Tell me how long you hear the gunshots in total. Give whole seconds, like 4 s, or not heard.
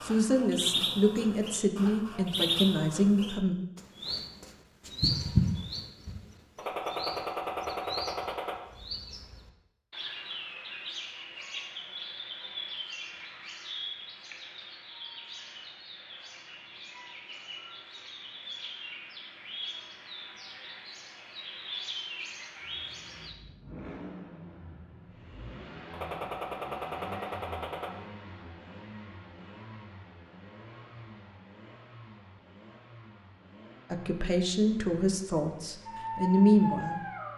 4 s.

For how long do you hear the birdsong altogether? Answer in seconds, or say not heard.
23 s.